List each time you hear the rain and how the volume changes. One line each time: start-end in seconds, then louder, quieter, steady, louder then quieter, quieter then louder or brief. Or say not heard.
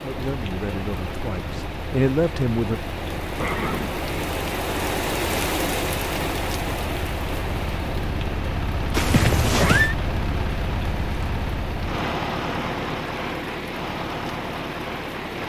0.0-15.4 louder then quieter.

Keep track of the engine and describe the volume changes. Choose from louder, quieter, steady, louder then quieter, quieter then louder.
louder.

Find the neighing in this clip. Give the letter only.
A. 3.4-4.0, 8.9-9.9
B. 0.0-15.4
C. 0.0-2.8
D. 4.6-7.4
A.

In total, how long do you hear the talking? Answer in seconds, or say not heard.
3 s.